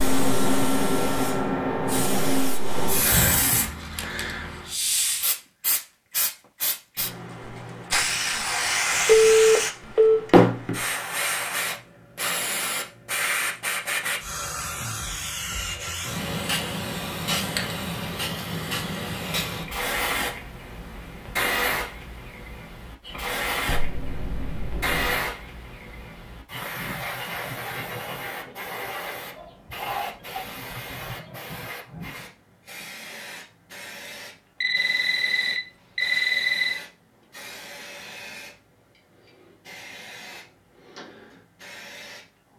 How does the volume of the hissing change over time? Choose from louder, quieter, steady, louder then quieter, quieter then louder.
quieter.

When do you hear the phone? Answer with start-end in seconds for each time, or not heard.
9.1-10.2, 23.6-25.2, 34.6-36.8.